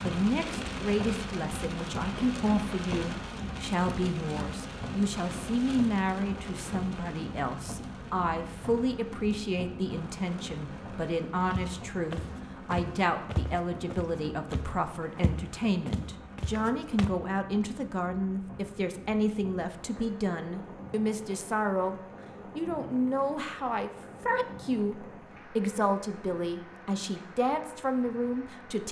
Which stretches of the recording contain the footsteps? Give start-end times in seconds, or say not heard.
11.5-17.1.